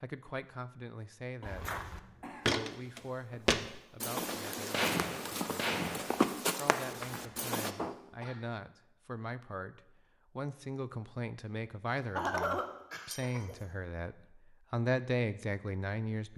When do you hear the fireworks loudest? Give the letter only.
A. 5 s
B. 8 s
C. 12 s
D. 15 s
A.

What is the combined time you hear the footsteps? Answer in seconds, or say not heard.
6 s.